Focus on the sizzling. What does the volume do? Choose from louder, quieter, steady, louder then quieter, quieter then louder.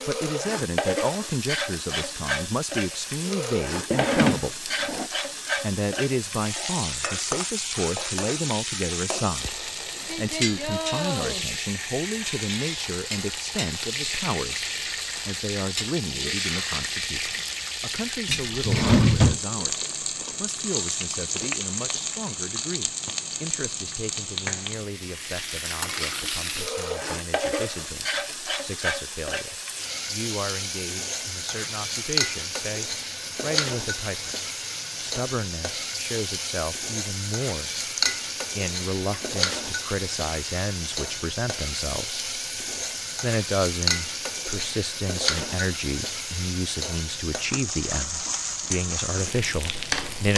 steady.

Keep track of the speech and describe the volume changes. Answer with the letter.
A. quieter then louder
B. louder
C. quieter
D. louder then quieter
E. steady
A.